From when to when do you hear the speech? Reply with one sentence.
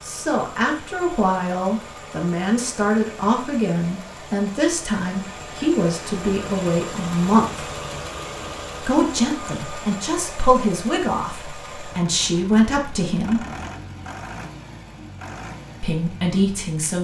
The speech can be heard from 0.0 to 7.7 s, from 8.8 to 13.4 s and from 15.8 to 16.9 s.